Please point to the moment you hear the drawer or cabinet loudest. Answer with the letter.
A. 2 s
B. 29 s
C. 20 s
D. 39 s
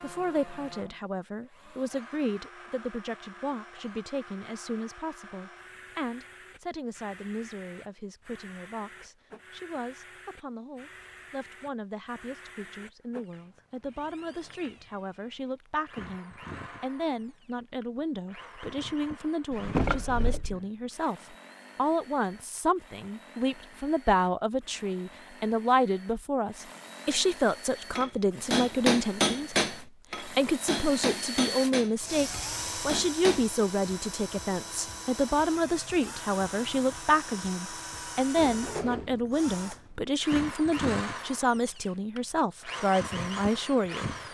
C.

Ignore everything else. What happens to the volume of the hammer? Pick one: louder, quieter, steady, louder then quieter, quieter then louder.
quieter.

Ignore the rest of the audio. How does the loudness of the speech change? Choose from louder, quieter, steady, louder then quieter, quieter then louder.
louder.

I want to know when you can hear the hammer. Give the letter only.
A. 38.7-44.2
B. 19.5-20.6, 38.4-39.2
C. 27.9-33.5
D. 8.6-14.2
C.